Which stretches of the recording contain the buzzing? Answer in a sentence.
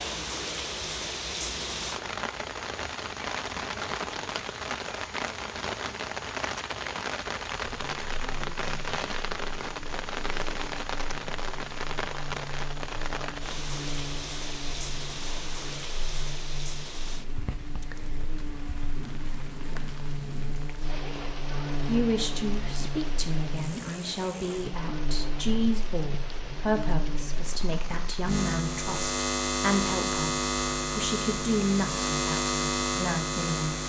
You can hear the buzzing from 7.7 to 33.8 s.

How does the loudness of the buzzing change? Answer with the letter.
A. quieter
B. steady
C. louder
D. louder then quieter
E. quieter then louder
C.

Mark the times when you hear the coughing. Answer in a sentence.
You can't hear the coughing here.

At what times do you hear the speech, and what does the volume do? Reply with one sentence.
You can hear the speech from 21.9 to 33.8 s, at a steady volume.